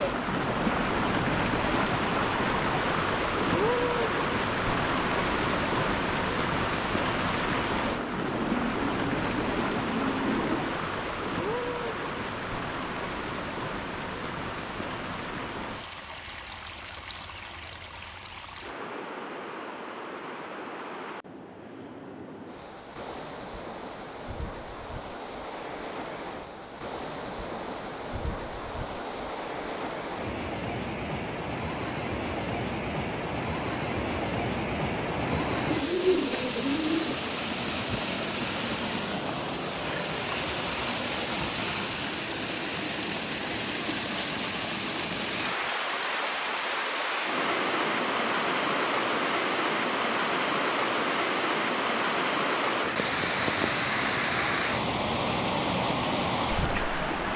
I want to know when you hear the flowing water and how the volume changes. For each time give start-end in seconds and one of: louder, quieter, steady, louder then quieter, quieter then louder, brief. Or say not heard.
0.0-57.3 quieter then louder.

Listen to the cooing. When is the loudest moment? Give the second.
36 s.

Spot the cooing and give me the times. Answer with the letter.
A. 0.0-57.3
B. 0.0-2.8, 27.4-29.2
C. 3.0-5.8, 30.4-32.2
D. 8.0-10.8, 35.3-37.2
D.